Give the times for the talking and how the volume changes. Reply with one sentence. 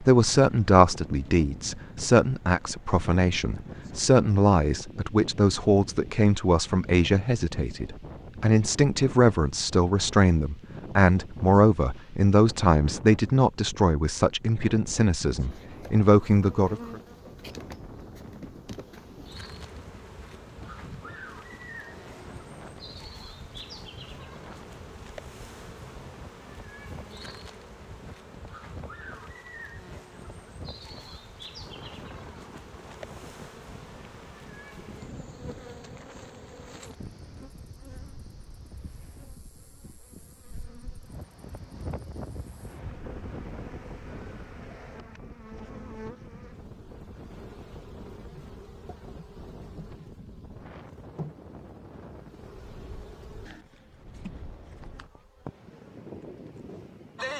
The talking can be heard from 0.0 to 16.9 s, at a steady volume.